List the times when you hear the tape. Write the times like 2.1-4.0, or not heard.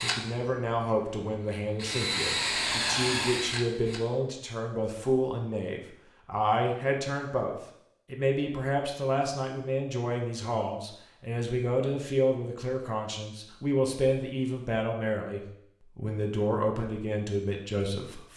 not heard.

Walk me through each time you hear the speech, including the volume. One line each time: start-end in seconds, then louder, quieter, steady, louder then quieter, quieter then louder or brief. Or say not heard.
0.0-18.3 steady.